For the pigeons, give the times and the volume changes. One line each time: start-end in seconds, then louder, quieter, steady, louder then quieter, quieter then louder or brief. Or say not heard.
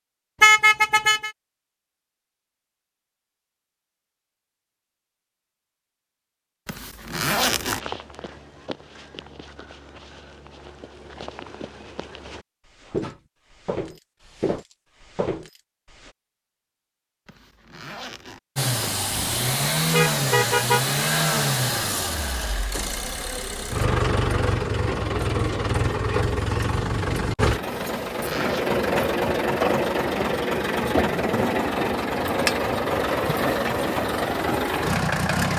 not heard.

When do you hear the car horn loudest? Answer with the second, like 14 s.
1 s.